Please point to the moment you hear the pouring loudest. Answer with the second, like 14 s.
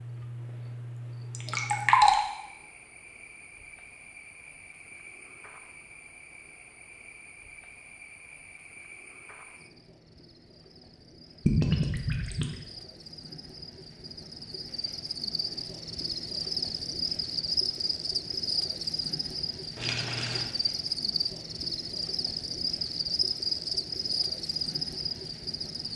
2 s.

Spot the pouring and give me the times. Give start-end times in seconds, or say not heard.
1.3-2.2, 11.4-12.6, 19.8-20.5.